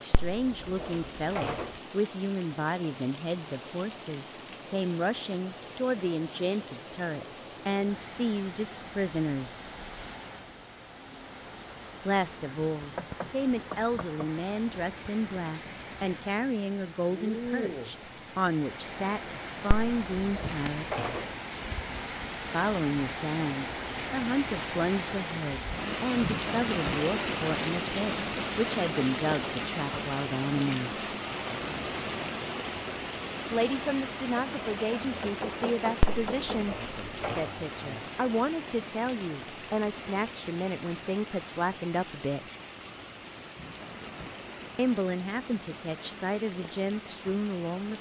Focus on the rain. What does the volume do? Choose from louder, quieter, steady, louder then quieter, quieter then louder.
louder then quieter.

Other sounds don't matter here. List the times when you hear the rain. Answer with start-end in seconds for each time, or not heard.
0.0-47.9.